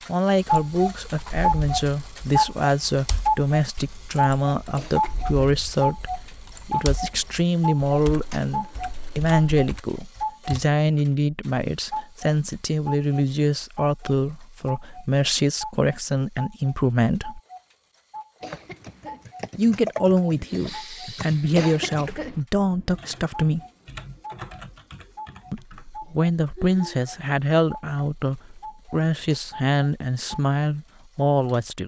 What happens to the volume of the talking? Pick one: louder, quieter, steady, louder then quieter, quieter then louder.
steady.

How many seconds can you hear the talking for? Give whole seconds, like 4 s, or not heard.
28 s.